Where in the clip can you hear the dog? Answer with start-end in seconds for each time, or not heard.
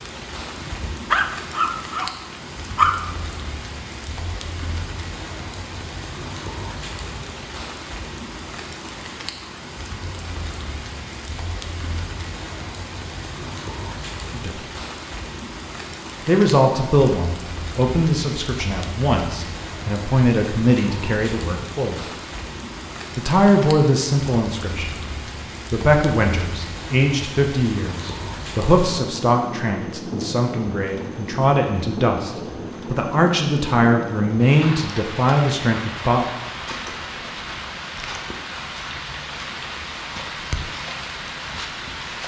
0.6-3.1.